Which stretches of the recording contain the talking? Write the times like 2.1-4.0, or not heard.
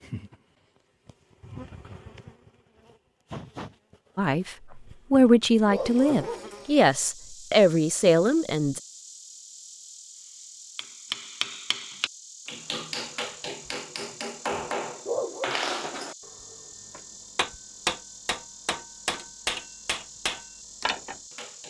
4.2-8.8.